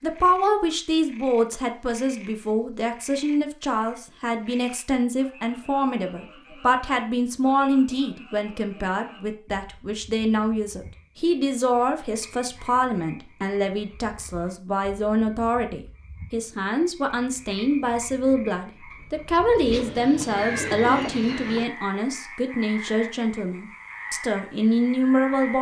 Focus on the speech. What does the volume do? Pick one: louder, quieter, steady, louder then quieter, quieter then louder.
steady.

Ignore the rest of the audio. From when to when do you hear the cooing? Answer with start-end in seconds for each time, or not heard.
19.6-21.6.